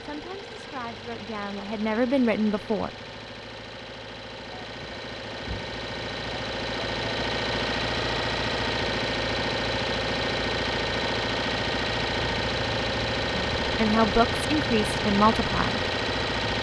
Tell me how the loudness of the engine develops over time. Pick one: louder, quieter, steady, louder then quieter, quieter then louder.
louder.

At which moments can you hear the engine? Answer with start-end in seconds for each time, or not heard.
0.0-16.5.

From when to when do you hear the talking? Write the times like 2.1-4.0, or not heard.
0.0-2.9, 13.3-15.8.